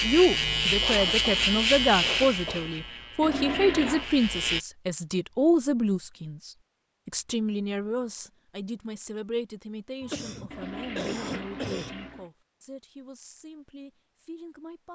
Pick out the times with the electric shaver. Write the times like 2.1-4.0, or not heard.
0.0-4.6.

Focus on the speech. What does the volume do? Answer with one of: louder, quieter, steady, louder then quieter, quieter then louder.
quieter.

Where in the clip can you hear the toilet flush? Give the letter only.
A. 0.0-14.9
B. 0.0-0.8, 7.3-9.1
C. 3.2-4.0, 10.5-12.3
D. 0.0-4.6
C.